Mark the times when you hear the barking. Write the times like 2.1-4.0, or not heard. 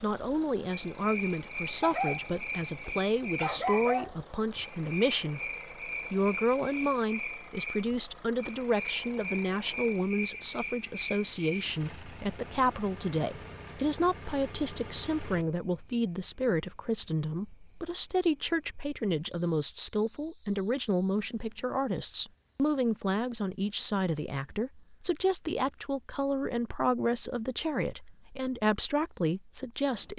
1.8-4.7.